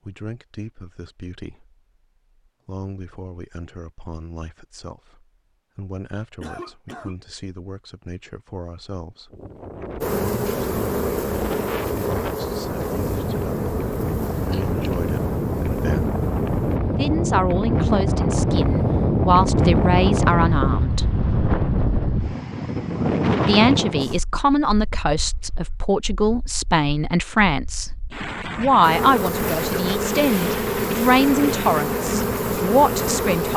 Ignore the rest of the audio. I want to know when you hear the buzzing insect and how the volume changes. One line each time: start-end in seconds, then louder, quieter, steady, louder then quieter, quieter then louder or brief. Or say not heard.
10.0-16.8 quieter
28.8-33.5 steady.